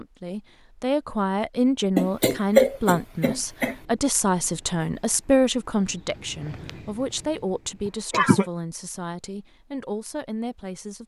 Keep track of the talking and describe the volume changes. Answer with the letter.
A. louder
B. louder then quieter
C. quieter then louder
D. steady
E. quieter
E.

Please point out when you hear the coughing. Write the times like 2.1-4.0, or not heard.
1.9-3.8, 7.8-8.4.